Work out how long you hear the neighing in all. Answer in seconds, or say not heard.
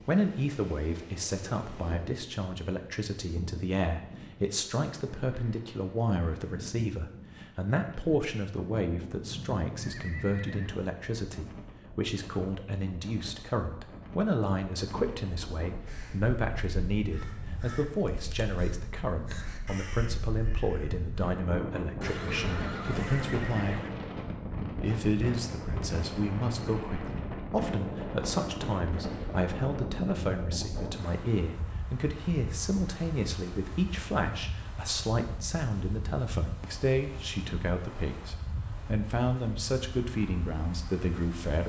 4 s.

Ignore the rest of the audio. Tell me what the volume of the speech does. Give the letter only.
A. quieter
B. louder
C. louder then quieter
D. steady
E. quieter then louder
D.